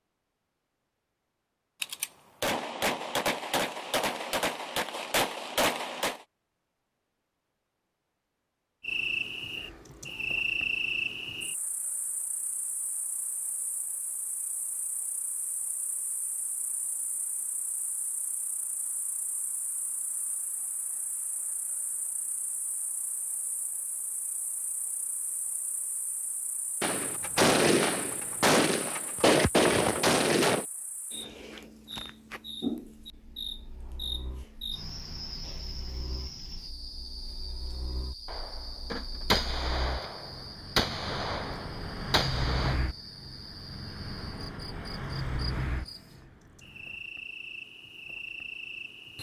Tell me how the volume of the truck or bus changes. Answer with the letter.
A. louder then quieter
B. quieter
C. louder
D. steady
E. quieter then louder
C.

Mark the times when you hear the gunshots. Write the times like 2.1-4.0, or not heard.
1.8-6.2, 26.8-30.6, 38.2-42.8.